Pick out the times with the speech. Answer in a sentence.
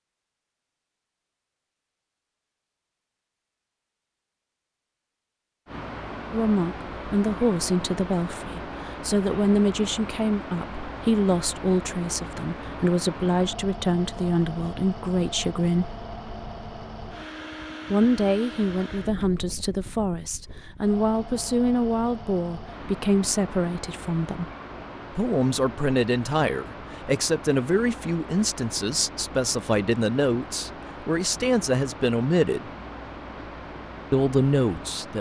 You can hear the speech from 6.3 to 16.0 s, from 17.9 to 24.5 s, from 25.1 to 32.7 s and from 34.1 to 35.1 s.